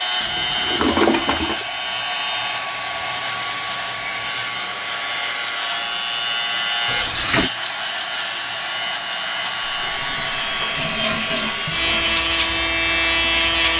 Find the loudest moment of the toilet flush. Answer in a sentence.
The loudest moment of the toilet flush is at 1 second.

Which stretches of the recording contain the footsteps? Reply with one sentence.
You can't hear the footsteps here.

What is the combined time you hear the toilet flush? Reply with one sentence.
You can hear the toilet flush for 4 seconds altogether.